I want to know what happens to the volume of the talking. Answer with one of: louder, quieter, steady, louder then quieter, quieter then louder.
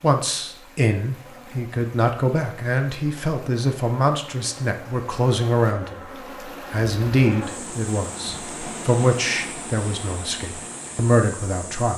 steady.